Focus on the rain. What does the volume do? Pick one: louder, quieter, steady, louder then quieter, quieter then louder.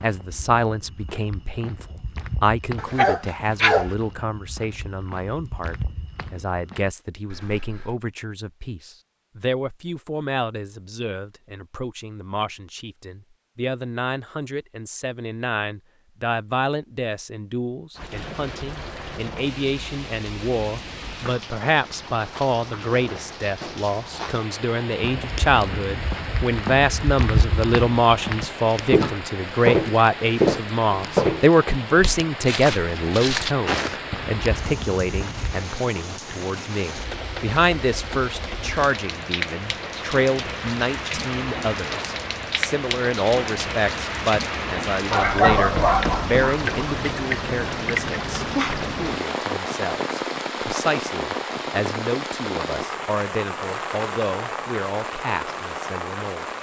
louder.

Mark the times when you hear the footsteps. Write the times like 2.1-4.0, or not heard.
0.0-8.0, 25.0-35.6.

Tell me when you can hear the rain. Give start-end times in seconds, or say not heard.
17.9-56.5.